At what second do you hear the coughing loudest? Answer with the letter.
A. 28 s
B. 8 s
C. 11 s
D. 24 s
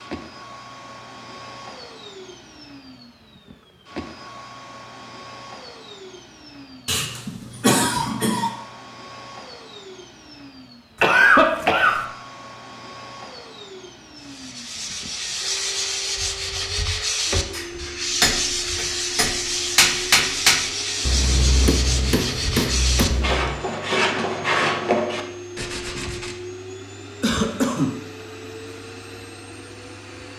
C.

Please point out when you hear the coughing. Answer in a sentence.
The coughing can be heard from 6.8 to 8.5 s, from 11.0 to 12.0 s and from 27.2 to 27.9 s.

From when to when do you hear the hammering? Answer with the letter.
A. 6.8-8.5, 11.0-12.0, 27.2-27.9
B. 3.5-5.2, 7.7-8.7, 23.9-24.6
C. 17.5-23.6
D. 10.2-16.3
C.